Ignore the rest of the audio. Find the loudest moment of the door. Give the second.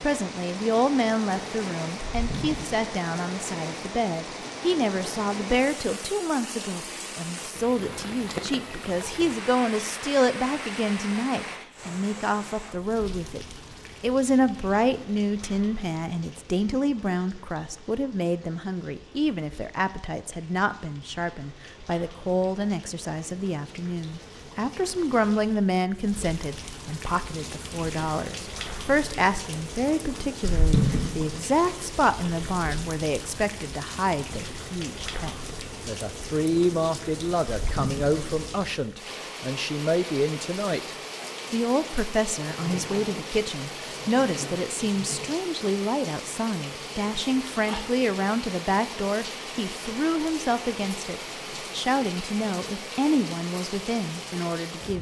31 s.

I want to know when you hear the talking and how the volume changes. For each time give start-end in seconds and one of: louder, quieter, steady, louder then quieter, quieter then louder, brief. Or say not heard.
0.0-54.9 steady.